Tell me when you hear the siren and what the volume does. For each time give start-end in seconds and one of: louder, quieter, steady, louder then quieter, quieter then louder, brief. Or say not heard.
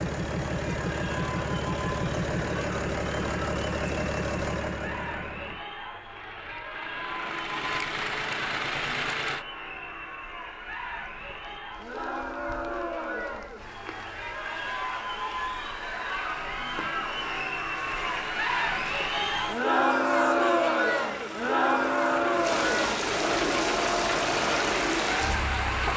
not heard.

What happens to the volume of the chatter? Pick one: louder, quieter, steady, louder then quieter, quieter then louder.
louder.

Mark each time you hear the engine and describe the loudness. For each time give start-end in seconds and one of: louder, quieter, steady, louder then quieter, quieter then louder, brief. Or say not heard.
0.0-9.4 quieter then louder
17.8-25.9 louder.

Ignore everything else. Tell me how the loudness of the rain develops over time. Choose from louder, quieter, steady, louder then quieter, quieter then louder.
louder.